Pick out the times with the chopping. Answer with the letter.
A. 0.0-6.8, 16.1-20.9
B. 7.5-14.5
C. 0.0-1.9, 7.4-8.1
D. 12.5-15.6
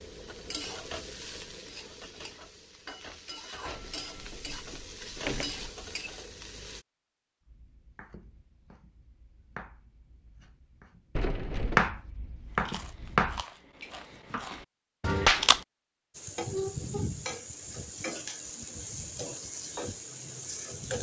B.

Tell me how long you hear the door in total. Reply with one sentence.
The door can be heard for 3 seconds in total.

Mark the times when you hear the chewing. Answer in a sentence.
The chewing can be heard from 12.5 to 15.6 s.